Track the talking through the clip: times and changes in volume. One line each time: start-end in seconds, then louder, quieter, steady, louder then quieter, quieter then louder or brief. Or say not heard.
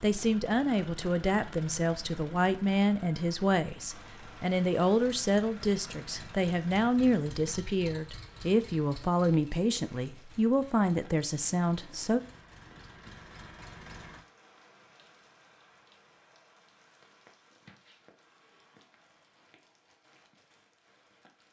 0.0-12.2 steady.